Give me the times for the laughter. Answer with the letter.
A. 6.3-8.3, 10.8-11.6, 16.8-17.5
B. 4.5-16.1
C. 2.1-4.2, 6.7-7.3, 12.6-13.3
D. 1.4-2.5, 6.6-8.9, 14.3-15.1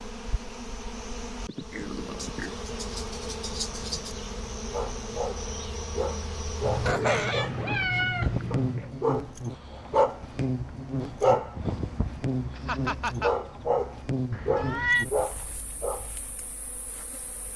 C.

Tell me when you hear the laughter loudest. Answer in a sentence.
The volume of the laughter peaks at 7 seconds.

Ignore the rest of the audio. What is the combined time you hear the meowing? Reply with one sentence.
You can hear the meowing for 4 seconds altogether.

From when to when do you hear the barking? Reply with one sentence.
You can hear the barking from 4.5 to 16.1 s.